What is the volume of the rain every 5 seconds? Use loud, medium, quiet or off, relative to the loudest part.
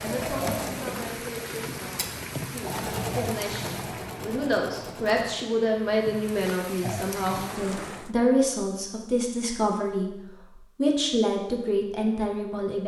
loud, loud, off.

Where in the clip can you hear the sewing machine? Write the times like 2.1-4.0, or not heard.
0.0-5.5.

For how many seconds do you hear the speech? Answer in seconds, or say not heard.
12 s.